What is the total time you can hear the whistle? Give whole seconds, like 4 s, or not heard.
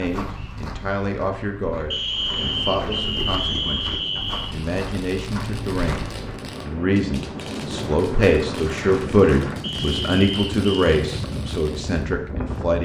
4 s.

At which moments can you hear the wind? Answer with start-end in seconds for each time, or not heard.
2.0-12.8.